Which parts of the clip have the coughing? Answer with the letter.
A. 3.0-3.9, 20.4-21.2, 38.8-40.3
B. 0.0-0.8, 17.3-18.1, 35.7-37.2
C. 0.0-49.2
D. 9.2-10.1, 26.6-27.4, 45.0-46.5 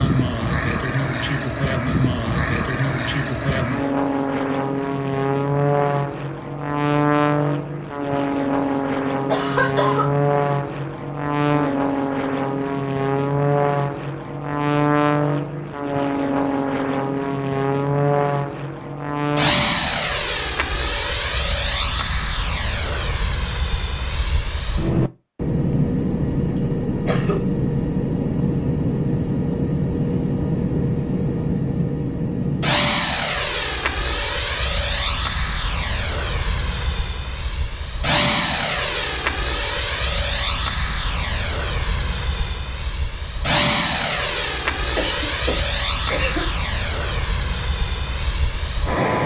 D.